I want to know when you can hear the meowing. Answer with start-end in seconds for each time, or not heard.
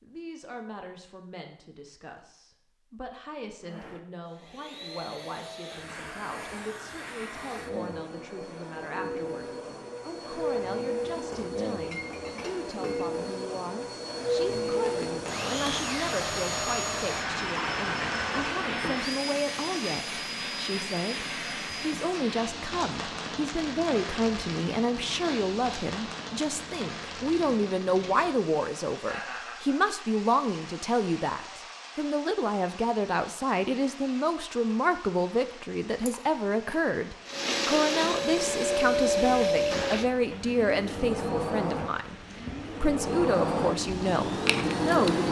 not heard.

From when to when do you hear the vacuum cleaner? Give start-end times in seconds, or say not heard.
3.6-22.1, 37.2-45.2.